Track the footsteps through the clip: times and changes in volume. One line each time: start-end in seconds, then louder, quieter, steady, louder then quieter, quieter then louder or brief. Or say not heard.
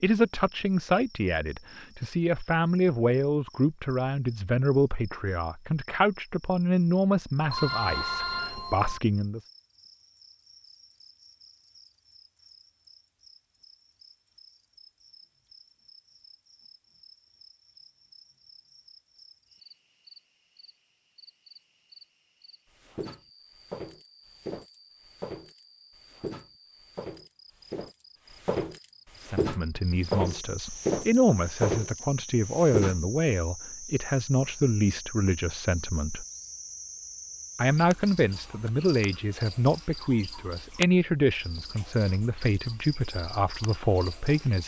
22.8-33.0 louder.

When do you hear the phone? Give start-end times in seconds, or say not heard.
7.5-9.0.